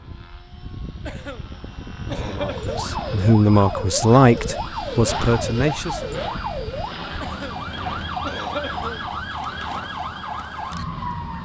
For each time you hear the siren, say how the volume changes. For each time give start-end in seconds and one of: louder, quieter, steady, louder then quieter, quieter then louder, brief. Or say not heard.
2.4-11.4 steady.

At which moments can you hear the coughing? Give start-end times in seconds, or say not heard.
1.1-2.9, 7.2-9.0.